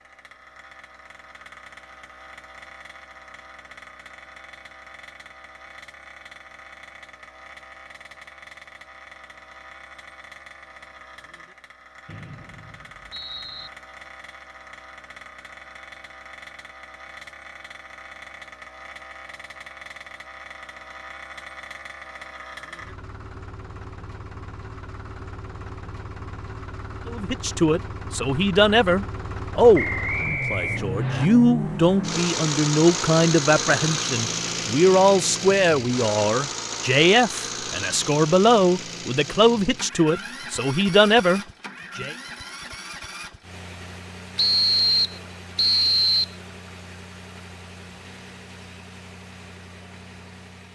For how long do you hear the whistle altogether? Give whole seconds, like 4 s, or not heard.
5 s.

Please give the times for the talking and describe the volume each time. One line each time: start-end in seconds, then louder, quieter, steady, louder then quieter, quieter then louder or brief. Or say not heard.
27.1-42.1 steady.